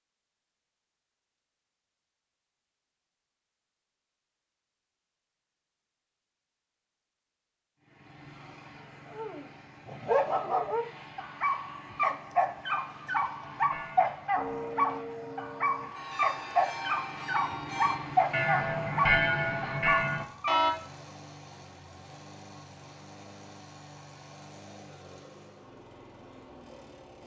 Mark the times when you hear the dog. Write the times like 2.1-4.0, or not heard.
9.1-20.6.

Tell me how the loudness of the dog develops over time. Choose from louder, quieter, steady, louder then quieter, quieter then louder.
steady.